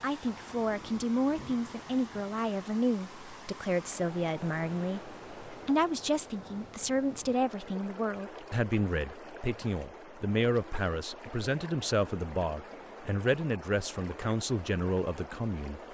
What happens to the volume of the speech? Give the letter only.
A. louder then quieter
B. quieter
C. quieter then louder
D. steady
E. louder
D.